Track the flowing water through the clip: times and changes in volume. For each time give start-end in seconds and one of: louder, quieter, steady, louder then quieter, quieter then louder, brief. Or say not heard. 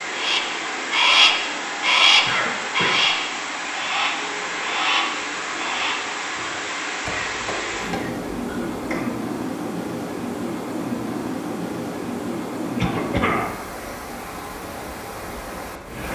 0.0-16.1 steady.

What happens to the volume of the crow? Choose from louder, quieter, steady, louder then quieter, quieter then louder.
quieter.